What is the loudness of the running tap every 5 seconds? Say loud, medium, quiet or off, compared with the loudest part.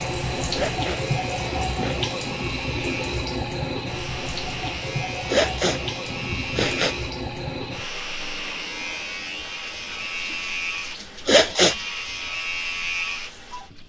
loud, medium, quiet.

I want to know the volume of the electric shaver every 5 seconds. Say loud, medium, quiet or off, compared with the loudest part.
medium, loud, loud.